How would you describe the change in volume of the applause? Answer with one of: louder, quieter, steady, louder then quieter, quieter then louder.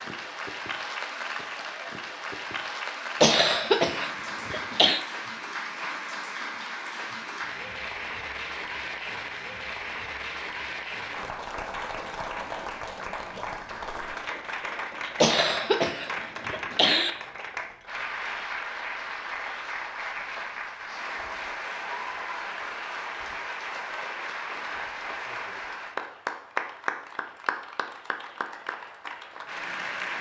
steady.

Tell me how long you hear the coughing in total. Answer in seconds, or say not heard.
4 s.